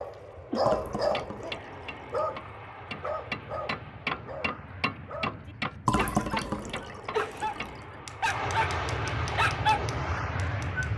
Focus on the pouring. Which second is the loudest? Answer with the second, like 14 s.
6 s.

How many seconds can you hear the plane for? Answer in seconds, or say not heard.
11 s.